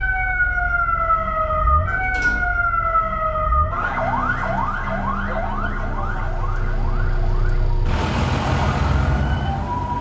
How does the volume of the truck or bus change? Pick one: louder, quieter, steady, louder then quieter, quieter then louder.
louder.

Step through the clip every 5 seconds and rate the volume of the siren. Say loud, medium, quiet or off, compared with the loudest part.
loud, medium.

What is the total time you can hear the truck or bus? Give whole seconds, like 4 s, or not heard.
10 s.